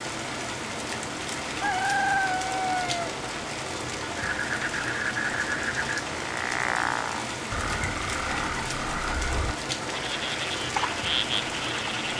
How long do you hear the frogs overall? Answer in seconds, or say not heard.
8 s.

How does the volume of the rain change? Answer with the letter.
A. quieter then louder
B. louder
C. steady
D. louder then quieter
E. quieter
C.